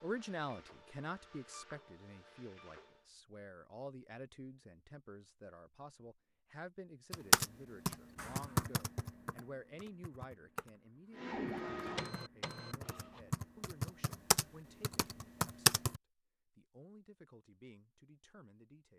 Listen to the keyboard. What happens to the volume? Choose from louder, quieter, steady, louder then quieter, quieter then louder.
quieter then louder.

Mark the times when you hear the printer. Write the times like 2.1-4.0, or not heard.
0.0-3.0, 11.2-13.2.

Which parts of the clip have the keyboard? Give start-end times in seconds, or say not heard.
7.1-10.7, 11.4-16.0.